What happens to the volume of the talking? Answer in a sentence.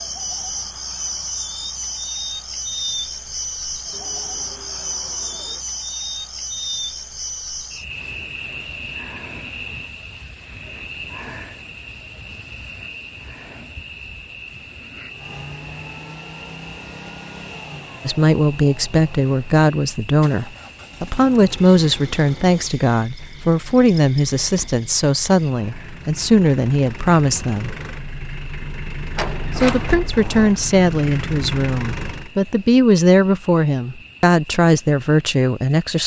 The loudness of the talking stays about the same.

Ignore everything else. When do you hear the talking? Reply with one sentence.
You can hear the talking from 18.1 to 27.8 s and from 29.6 to 36.0 s.